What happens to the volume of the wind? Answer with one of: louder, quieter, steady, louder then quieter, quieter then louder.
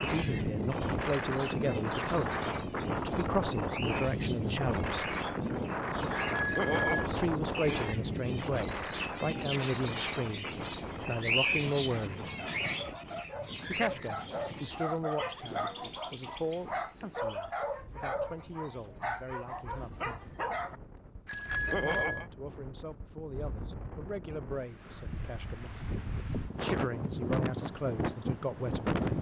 quieter then louder.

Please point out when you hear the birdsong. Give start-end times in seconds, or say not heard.
0.0-17.6.